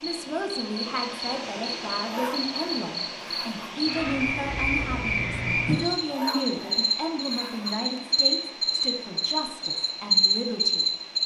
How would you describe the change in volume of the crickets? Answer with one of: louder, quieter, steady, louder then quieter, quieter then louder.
louder.